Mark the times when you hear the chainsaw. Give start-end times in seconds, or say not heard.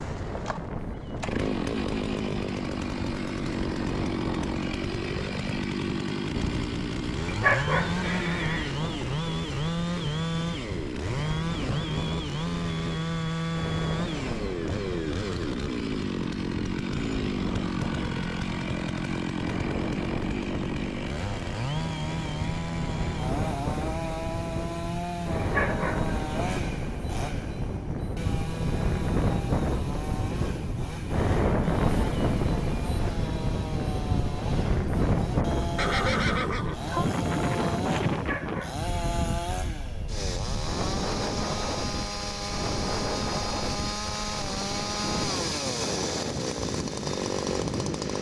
0.0-48.1.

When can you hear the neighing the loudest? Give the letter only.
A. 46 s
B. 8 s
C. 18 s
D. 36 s
D.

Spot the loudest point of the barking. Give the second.
8 s.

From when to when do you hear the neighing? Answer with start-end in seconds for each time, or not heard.
8.0-8.8, 35.8-37.1.